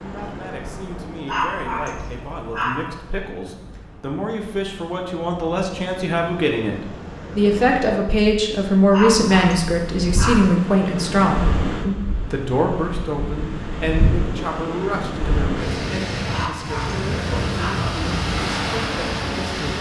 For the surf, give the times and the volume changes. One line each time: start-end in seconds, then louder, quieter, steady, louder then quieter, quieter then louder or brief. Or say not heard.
0.0-19.7 louder.